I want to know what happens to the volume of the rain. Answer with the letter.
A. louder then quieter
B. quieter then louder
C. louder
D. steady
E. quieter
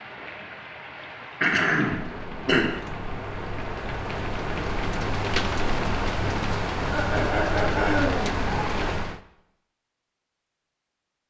C.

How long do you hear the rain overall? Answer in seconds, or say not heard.
9 s.